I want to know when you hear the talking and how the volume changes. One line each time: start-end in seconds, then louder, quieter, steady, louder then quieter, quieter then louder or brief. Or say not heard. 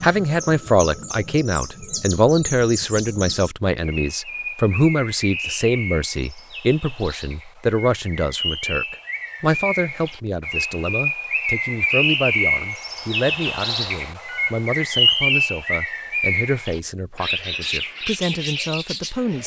0.0-19.4 quieter.